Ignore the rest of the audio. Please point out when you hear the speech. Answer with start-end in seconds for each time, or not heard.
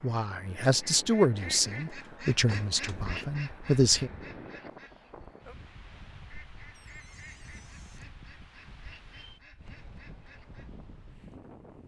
0.0-4.1.